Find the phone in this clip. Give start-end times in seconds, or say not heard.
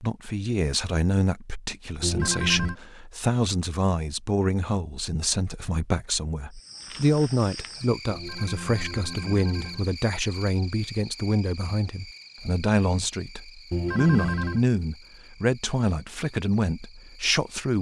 2.0-2.8, 8.1-9.8, 13.7-14.6.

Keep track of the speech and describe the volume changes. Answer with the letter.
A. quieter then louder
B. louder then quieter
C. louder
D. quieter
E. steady
E.